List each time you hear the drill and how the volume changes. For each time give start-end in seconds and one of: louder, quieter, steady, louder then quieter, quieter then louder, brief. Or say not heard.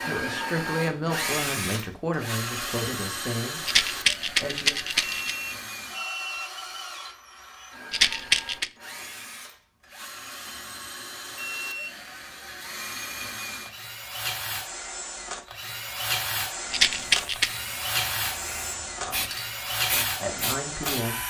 0.0-21.2 quieter then louder.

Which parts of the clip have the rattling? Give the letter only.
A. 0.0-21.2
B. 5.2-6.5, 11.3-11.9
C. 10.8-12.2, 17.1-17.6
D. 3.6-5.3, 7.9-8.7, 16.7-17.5
D.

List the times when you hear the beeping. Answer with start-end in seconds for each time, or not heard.
5.2-6.5, 11.3-11.9.